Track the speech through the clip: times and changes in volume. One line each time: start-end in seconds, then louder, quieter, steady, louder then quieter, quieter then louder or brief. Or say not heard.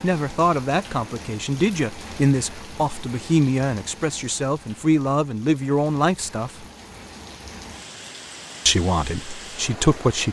0.0-6.7 steady
8.7-10.2 brief.